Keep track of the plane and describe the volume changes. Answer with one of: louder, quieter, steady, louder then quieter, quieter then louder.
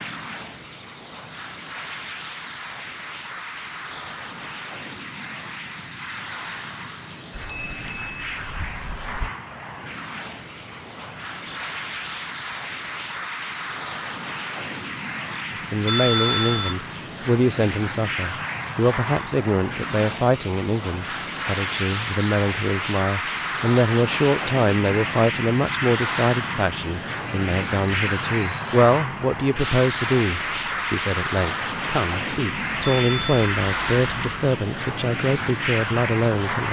louder.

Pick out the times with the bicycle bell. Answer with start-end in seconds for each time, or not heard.
7.3-9.3, 15.8-16.8, 32.8-33.4.